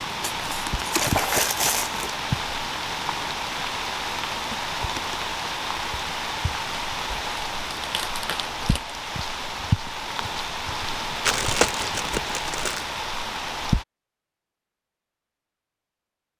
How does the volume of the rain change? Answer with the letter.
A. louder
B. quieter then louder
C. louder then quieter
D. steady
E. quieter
D.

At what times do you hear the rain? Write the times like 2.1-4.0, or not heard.
0.0-13.8.